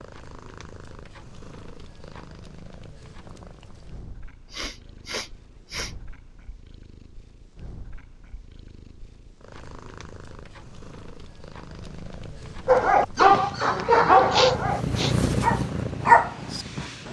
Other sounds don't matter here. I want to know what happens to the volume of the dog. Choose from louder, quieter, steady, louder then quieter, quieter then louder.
quieter then louder.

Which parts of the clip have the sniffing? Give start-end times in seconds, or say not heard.
4.5-6.0, 14.2-15.2.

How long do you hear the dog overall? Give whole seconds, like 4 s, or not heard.
4 s.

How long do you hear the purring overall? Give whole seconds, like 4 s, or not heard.
17 s.